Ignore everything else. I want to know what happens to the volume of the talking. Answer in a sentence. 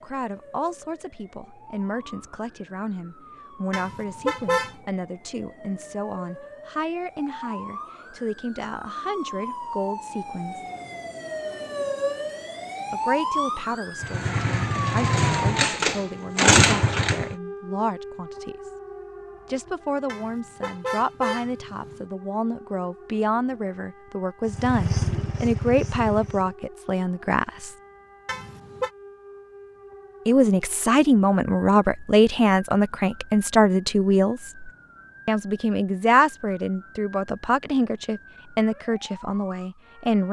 The volume of the talking goes up.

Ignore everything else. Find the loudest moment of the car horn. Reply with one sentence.
The volume of the car horn peaks at 4 seconds.